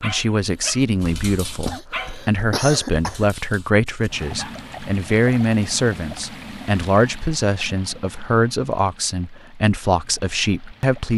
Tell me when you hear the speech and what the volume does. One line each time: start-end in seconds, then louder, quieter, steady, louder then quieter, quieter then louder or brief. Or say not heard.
0.0-11.1 steady.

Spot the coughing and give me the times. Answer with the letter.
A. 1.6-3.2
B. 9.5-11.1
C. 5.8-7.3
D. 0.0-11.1
A.